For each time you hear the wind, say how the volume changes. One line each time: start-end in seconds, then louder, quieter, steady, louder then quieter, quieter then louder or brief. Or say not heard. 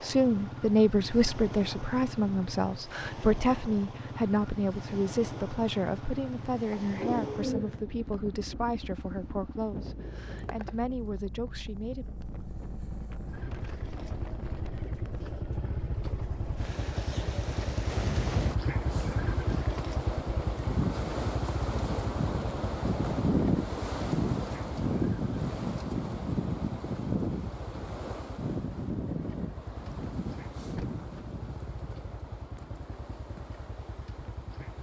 0.0-34.7 louder then quieter.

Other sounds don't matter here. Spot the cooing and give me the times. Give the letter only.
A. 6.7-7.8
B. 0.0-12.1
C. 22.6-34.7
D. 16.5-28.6
A.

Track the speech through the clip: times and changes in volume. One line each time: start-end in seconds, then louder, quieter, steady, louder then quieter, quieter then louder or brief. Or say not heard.
0.0-12.1 quieter.